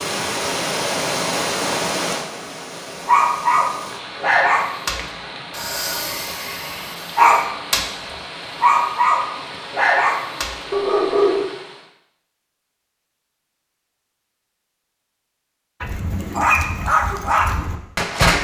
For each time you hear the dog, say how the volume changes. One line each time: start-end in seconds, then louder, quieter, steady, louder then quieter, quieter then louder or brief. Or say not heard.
3.0-7.8 quieter then louder
8.6-11.4 brief
15.8-18.3 brief.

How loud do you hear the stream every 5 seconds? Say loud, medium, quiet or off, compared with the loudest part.
loud, medium, medium, off.